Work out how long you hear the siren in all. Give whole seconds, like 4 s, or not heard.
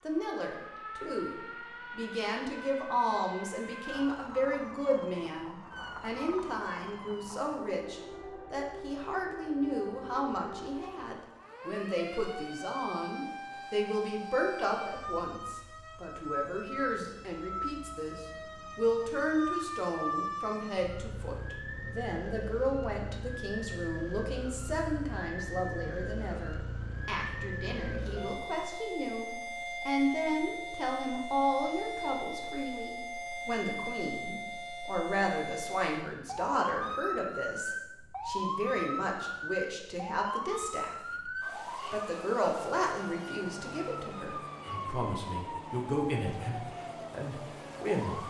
48 s.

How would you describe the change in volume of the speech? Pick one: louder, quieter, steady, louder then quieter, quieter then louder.
steady.